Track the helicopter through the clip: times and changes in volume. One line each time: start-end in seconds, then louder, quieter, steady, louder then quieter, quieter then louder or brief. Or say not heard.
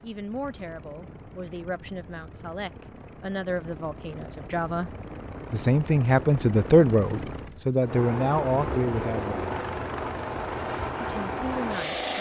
0.0-12.1 louder.